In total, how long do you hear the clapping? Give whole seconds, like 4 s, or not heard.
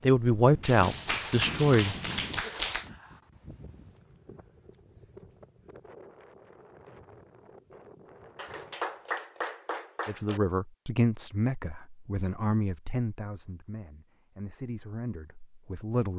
4 s.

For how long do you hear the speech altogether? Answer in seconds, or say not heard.
8 s.